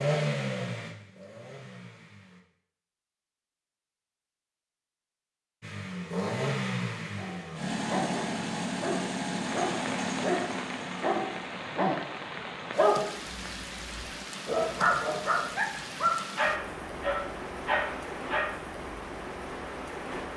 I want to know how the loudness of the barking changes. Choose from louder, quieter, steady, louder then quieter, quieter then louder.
louder.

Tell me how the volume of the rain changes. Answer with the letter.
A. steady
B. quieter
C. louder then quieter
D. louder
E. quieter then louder
A.